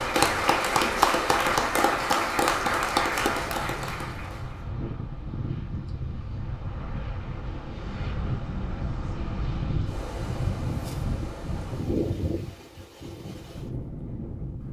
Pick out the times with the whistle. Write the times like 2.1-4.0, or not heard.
not heard.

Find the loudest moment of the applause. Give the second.
1 s.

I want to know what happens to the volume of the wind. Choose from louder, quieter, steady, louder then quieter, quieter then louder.
louder.